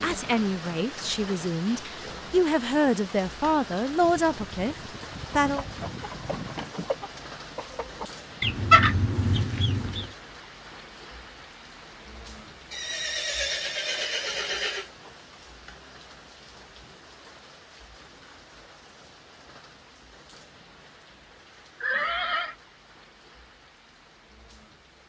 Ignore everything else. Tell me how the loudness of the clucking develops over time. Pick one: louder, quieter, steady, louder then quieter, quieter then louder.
louder then quieter.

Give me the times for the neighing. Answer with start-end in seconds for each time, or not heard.
4.0-6.8, 12.7-14.9, 21.8-22.6.